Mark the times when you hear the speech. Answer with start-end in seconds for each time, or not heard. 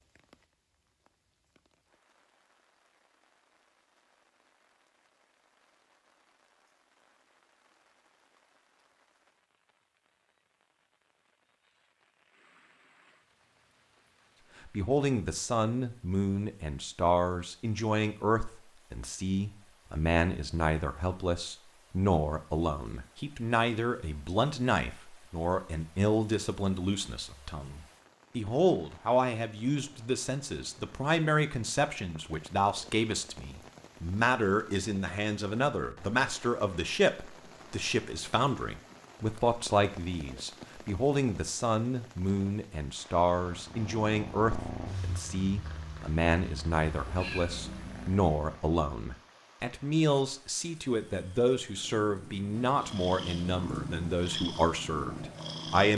14.7-55.9.